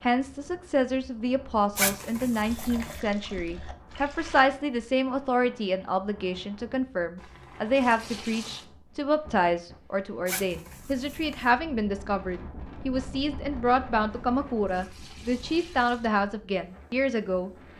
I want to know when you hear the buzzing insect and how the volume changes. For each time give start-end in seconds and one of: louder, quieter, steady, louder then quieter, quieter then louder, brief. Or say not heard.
not heard.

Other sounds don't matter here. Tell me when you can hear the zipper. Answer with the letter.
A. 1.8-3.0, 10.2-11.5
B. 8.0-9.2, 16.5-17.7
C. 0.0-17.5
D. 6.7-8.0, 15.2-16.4
A.